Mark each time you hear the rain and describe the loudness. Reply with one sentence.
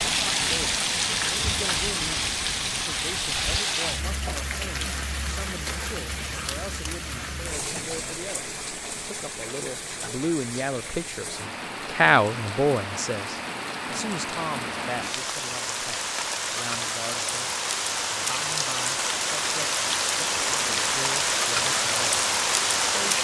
You can hear the rain from 0.0 to 23.1 s, getting quieter then louder.